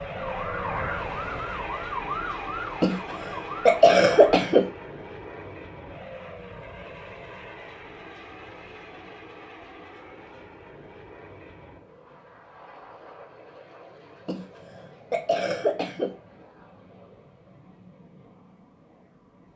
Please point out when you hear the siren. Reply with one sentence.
You can hear the siren from 0.1 to 4.3 s.